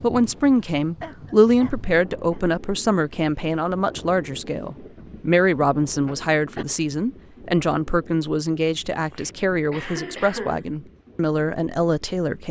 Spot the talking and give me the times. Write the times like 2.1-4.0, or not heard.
0.0-12.4.